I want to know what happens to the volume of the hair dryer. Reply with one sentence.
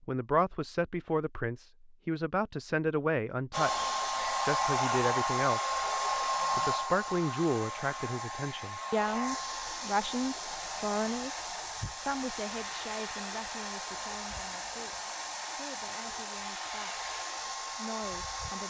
The volume of the hair dryer goes down.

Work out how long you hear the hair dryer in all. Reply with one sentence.
The hair dryer can be heard for 15 seconds in total.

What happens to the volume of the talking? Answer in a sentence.
The loudness of the talking goes down.